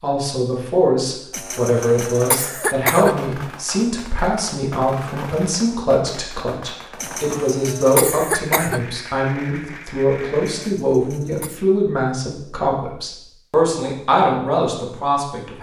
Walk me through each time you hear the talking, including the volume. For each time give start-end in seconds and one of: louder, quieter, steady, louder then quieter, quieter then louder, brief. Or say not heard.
0.0-15.5 steady.